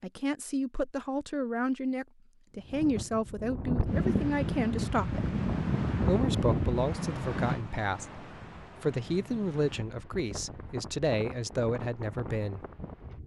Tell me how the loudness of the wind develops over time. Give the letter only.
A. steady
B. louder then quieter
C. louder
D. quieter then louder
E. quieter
E.